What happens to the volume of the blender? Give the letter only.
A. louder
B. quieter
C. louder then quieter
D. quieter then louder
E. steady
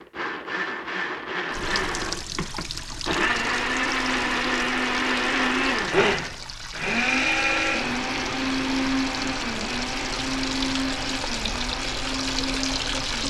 C.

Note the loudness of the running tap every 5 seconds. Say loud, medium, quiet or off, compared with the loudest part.
medium, medium, loud.